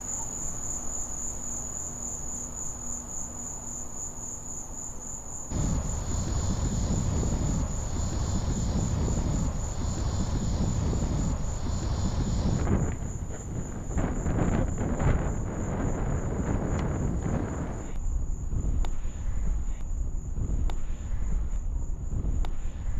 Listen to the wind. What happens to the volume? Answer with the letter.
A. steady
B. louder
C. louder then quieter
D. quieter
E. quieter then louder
D.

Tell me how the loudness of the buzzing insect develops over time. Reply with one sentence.
The loudness of the buzzing insect goes down.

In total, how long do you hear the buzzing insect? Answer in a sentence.
The buzzing insect can be heard for 23 seconds in total.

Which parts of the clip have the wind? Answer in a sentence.
The wind can be heard from 5.5 to 22.9 s.